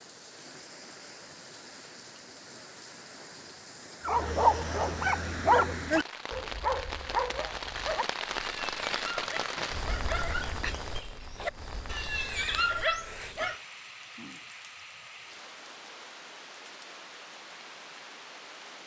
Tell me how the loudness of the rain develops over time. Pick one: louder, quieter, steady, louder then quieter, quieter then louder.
louder then quieter.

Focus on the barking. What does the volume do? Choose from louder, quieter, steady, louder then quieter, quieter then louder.
quieter then louder.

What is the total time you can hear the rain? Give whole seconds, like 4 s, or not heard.
19 s.